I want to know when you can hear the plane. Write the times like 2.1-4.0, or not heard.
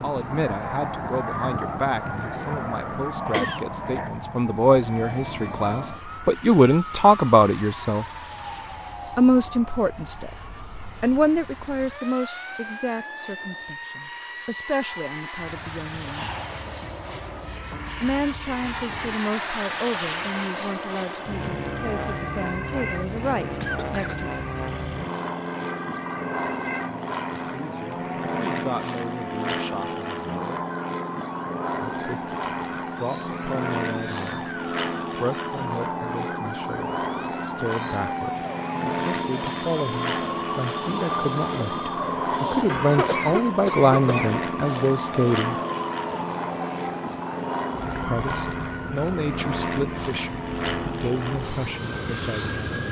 0.0-52.8.